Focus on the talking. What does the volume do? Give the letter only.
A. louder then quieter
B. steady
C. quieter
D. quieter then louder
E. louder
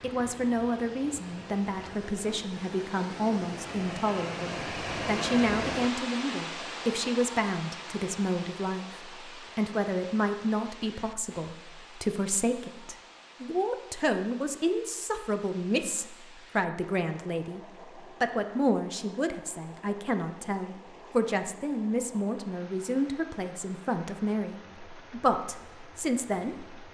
B.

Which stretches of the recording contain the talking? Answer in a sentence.
The talking can be heard from 0.0 to 17.6 s and from 18.2 to 26.8 s.